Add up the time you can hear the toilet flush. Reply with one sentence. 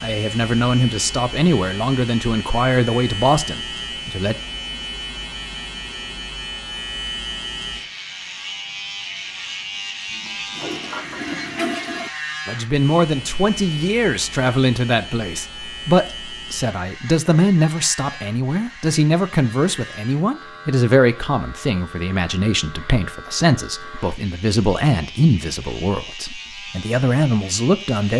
The toilet flush can be heard for 2 seconds in total.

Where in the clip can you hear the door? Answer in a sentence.
You can't hear the door here.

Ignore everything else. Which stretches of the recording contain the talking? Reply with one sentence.
The talking can be heard from 0.0 to 4.3 s and from 12.4 to 28.1 s.